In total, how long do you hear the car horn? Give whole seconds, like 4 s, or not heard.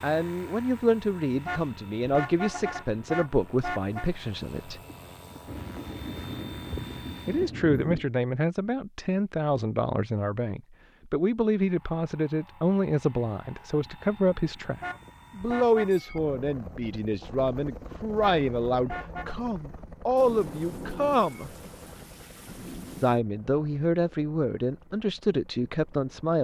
5 s.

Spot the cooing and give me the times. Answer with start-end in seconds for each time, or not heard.
not heard.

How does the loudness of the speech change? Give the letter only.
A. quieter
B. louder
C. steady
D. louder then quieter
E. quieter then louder
C.